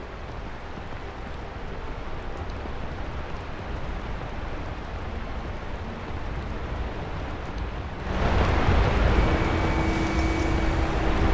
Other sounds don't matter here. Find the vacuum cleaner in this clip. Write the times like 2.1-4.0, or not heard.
9.2-11.2.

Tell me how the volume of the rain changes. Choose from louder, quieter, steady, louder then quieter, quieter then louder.
louder.